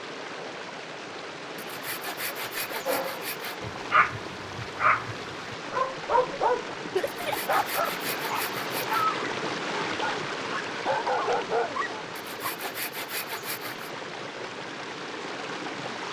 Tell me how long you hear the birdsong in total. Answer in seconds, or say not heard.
not heard.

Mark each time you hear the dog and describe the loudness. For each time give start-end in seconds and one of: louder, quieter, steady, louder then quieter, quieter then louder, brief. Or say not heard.
2.9-12.5 steady.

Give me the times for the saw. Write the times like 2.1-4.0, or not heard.
1.6-3.6, 7.2-9.0, 12.2-13.9.